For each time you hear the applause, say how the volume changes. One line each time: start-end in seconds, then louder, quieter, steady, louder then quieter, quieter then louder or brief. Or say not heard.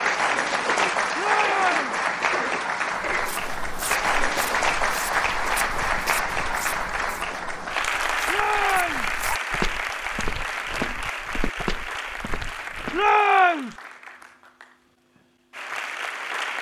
0.0-16.5 quieter.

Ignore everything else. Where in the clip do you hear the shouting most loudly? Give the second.
13 s.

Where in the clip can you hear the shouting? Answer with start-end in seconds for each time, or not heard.
1.1-2.0, 8.2-9.1, 12.9-13.8.